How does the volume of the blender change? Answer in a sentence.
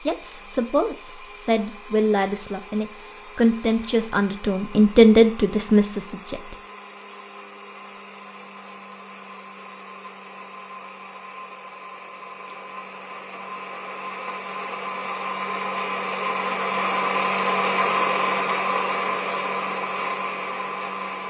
The volume of the blender goes up.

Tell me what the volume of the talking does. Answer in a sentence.
The volume of the talking goes up.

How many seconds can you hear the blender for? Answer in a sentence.
You can hear the blender for 21 seconds altogether.